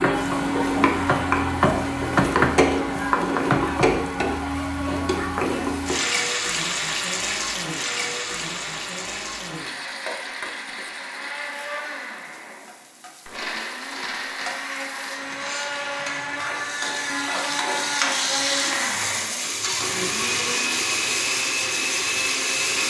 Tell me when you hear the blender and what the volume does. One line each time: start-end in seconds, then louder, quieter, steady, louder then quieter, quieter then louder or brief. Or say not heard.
0.0-22.8 quieter then louder.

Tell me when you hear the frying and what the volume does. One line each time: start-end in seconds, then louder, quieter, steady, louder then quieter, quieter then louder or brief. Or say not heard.
0.0-22.8 quieter then louder.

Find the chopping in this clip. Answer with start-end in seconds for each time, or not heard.
0.0-4.0.